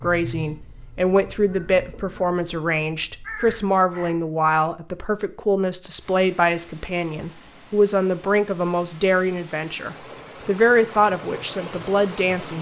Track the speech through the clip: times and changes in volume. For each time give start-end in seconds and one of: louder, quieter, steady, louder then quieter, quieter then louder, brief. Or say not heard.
0.0-12.5 steady.